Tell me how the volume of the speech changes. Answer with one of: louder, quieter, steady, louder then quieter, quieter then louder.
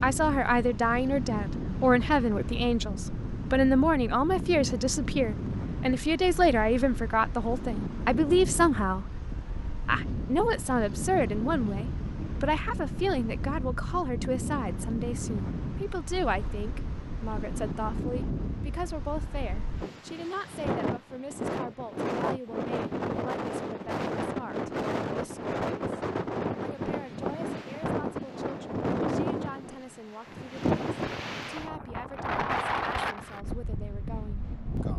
quieter.